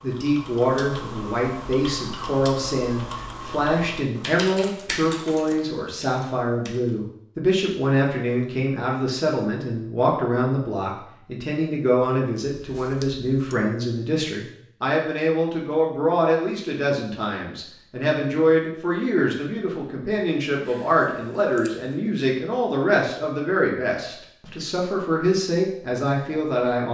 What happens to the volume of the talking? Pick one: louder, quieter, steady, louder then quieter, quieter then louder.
steady.